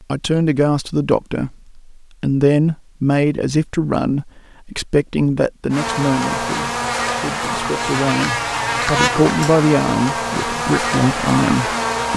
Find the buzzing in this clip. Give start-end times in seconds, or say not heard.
5.7-12.1.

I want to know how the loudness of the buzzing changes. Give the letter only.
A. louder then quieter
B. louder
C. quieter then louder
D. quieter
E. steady
E.